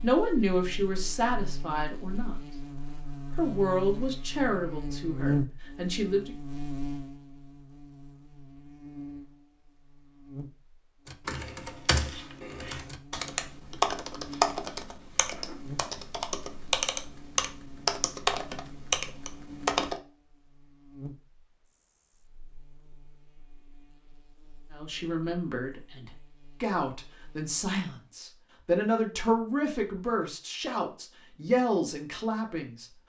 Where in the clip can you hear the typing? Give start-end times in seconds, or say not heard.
11.1-19.9.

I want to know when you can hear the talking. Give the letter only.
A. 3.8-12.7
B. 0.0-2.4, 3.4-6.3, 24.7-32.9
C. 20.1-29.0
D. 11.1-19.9
B.